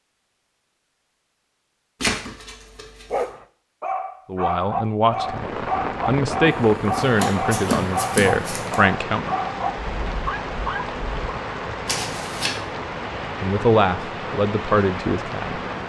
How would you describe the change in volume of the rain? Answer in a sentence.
The loudness of the rain stays about the same.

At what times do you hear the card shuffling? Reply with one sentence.
The card shuffling can be heard from 2.0 to 3.3 s, from 6.5 to 8.8 s and from 11.8 to 12.5 s.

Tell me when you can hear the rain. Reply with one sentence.
You can hear the rain from 5.0 to 15.8 s.